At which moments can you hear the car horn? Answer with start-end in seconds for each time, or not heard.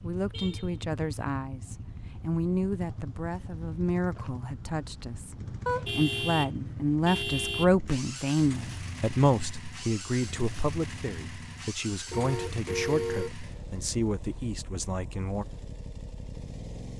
0.3-0.8, 5.7-7.7, 12.1-13.3.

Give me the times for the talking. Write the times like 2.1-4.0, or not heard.
0.0-15.4.